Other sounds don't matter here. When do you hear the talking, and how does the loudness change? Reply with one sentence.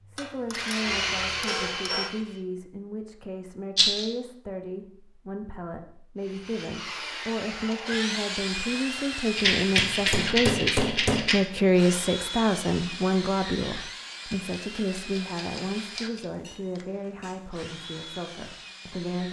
You can hear the talking from 0.1 to 19.2 s, getting louder then quieter.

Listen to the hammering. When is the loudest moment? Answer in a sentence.
The loudest moment of the hammering is at 11 seconds.